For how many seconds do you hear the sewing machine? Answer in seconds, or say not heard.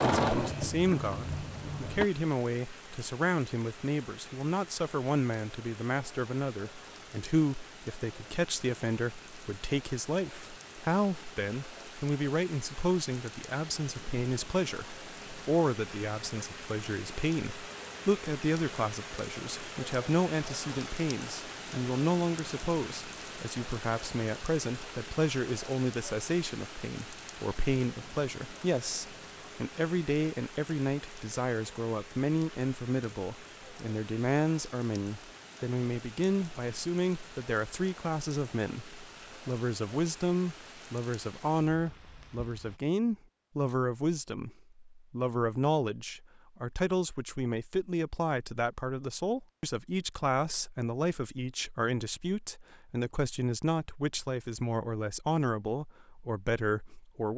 2 s.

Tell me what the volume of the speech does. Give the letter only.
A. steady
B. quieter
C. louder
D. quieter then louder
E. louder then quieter
A.